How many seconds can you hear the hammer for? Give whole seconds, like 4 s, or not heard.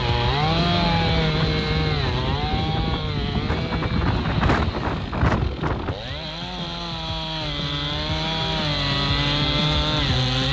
not heard.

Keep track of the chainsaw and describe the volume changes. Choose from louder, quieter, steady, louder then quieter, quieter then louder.
quieter then louder.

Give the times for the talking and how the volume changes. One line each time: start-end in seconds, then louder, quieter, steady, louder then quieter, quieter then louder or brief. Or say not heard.
not heard.